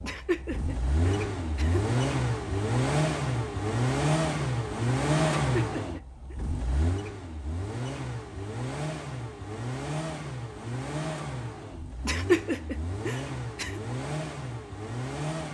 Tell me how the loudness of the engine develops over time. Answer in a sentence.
The loudness of the engine goes down.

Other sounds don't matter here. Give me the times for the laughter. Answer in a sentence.
The laughter can be heard from 0.0 to 1.9 s, from 5.5 to 6.3 s and from 12.1 to 13.8 s.